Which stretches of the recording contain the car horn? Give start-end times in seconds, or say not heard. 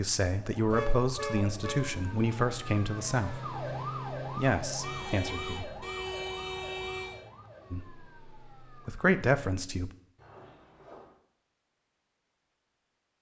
0.7-2.0, 4.8-7.2, 10.2-11.2.